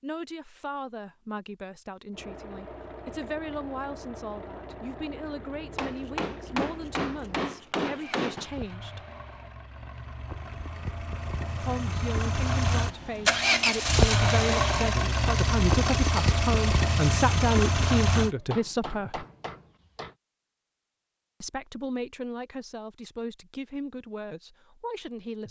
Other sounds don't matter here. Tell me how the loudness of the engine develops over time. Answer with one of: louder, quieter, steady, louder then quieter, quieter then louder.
louder.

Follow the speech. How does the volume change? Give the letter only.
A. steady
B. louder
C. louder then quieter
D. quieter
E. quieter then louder
C.